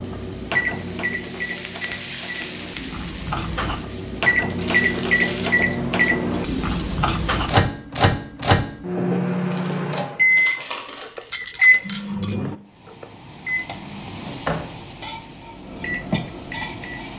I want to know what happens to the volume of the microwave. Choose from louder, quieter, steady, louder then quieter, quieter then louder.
louder then quieter.